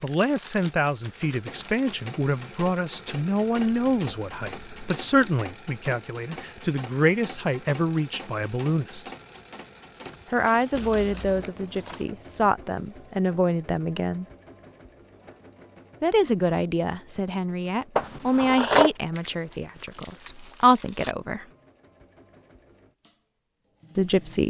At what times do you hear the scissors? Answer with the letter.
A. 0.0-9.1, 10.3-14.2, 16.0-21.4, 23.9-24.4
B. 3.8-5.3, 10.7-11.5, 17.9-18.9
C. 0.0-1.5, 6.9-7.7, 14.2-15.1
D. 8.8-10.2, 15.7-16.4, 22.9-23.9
B.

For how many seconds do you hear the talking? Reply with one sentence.
The talking can be heard for 19 seconds in total.